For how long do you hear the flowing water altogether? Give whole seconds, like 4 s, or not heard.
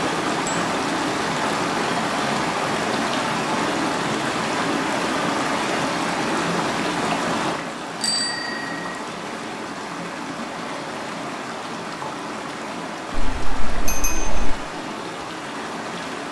16 s.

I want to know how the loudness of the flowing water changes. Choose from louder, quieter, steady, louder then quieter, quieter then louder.
quieter.